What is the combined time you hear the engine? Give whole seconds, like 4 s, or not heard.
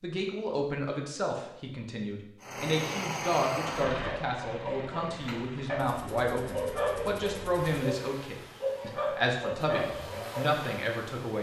9 s.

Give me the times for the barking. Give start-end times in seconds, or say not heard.
4.0-10.5.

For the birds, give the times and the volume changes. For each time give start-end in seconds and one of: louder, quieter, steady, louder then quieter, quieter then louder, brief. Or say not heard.
not heard.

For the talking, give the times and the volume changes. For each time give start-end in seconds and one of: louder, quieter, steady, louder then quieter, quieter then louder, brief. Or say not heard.
0.0-11.3 steady.